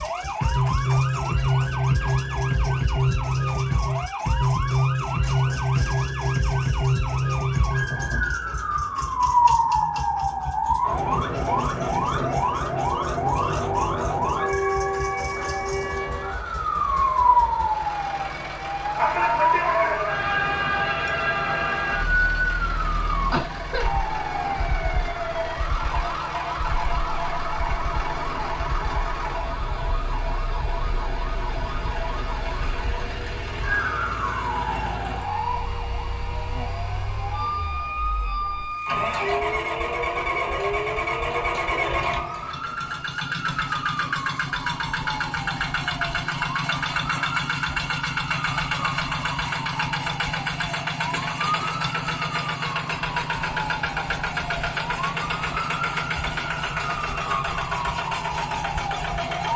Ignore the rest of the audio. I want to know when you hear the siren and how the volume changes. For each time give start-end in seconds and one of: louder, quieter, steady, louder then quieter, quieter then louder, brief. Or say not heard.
0.0-59.5 quieter.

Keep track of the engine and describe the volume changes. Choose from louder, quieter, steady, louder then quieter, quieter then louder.
louder.